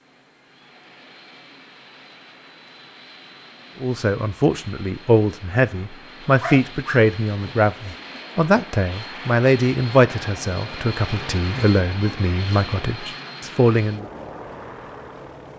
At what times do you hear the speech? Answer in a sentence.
You can hear the speech from 3.8 to 14.1 s.